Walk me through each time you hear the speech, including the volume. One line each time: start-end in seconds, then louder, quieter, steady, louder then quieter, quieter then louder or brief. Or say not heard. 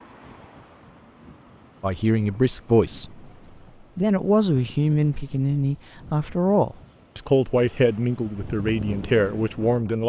1.8-3.2 brief
4.0-10.0 steady.